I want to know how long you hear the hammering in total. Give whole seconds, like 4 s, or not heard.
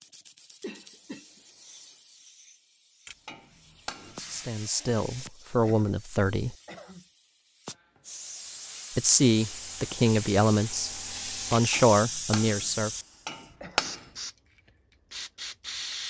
4 s.